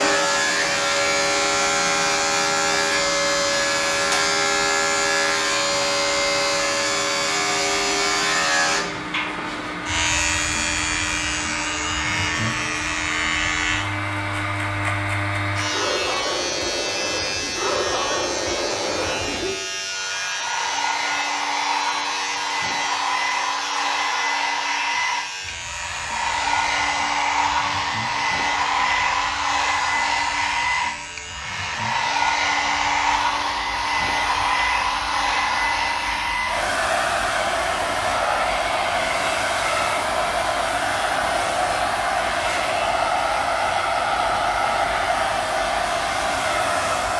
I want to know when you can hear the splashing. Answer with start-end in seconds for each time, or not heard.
not heard.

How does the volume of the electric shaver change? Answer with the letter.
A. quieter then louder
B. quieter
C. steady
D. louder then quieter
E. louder
B.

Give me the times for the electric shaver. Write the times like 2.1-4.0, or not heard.
0.0-47.1.